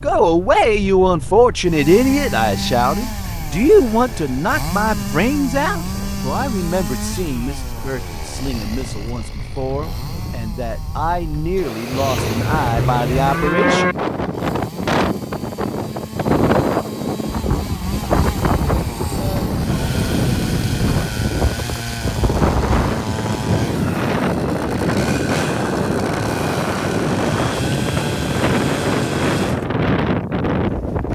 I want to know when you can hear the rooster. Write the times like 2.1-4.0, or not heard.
not heard.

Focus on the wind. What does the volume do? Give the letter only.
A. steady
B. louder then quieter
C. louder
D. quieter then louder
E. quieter
C.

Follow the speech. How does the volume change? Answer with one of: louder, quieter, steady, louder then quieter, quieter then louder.
quieter then louder.